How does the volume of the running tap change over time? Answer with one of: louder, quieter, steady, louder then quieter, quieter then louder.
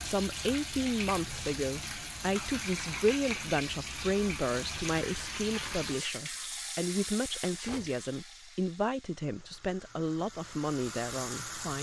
quieter.